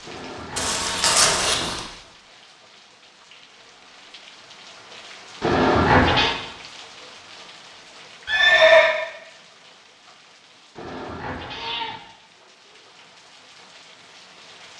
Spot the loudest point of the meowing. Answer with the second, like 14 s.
6 s.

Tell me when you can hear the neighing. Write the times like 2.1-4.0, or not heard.
0.6-1.8, 8.2-8.9.